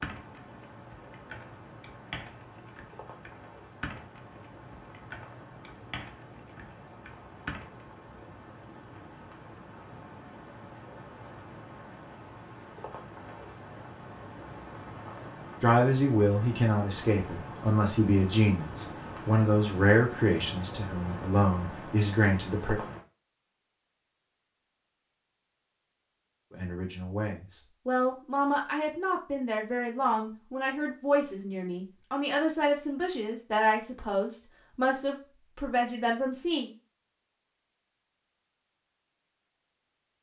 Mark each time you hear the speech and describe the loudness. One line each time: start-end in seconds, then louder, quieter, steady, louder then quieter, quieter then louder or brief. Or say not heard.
15.6-22.8 steady
26.5-36.7 steady.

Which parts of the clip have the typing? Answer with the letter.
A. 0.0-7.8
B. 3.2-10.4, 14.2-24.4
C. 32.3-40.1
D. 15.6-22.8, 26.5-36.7
A.